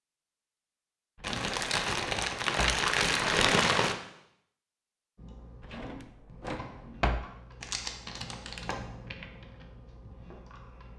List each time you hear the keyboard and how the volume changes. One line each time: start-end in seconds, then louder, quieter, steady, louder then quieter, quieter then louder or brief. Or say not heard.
5.2-10.9 louder then quieter.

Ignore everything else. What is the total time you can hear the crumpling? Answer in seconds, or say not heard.
4 s.